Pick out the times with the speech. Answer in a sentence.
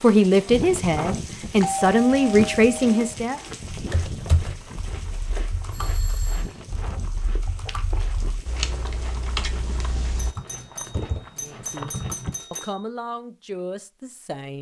The speech can be heard from 0.0 to 3.4 s, from 11.4 to 11.9 s and from 12.5 to 14.5 s.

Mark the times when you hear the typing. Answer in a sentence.
You can hear the typing from 3.7 to 12.3 s.